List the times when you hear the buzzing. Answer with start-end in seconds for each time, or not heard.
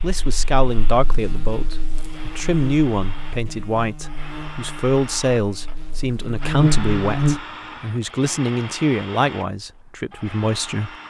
0.0-7.4.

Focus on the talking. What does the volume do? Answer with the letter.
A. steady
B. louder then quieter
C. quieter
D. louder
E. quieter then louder
A.